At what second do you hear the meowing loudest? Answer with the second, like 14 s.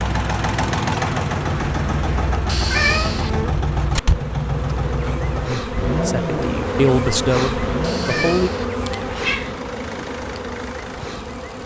3 s.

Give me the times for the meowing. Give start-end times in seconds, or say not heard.
2.5-3.4, 7.8-9.6.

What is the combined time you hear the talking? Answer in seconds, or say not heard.
3 s.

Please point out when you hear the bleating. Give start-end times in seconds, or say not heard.
not heard.